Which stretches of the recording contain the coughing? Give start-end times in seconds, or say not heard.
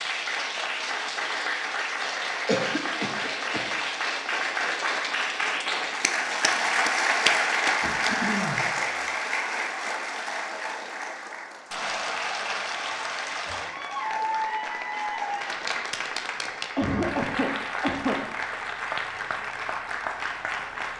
2.5-3.6, 7.8-8.7, 16.8-18.2.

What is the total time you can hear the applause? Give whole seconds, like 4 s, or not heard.
21 s.